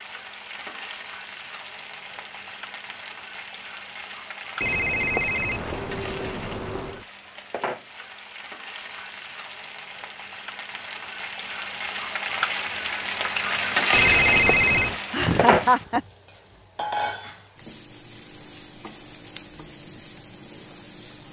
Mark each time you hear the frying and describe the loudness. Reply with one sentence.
You can hear the frying from 0.0 to 21.2 s, getting louder then quieter.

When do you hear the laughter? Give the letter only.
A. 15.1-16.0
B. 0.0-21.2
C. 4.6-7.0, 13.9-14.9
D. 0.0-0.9
A.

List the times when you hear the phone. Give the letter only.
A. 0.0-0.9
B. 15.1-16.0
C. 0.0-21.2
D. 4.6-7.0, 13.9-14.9
D.